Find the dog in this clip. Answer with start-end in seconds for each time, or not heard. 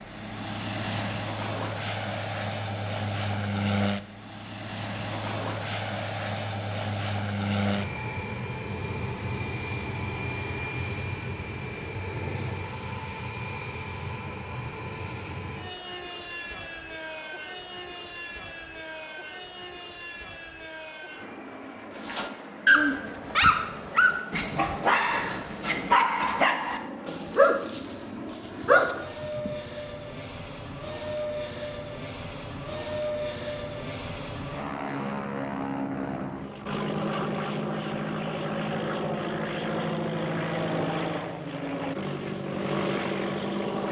22.1-29.6.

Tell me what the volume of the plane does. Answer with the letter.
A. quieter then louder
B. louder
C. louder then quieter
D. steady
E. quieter
A.